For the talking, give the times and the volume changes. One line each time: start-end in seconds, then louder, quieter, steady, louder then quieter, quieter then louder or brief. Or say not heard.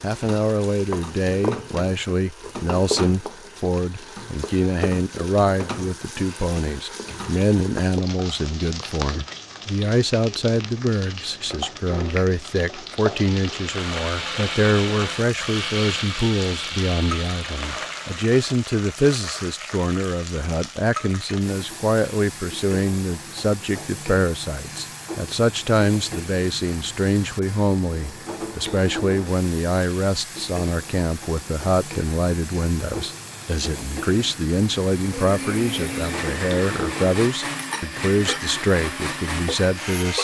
0.0-40.1 steady.